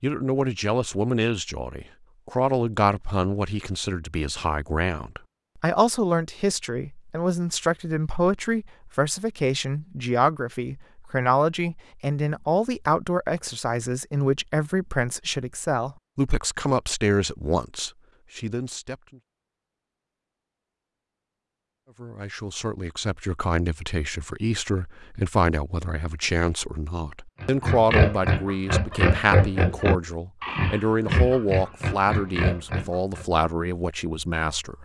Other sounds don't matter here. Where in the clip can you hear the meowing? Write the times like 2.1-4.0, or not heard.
not heard.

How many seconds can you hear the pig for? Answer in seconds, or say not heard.
6 s.